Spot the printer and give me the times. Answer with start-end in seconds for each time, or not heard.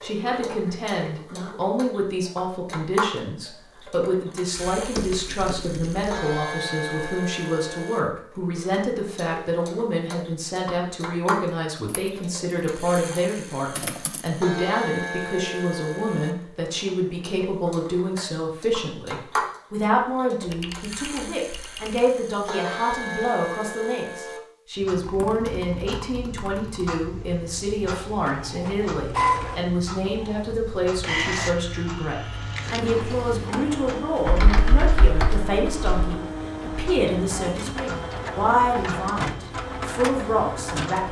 28.1-41.0.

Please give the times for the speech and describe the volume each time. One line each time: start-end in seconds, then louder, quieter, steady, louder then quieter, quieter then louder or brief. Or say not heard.
0.0-41.0 steady.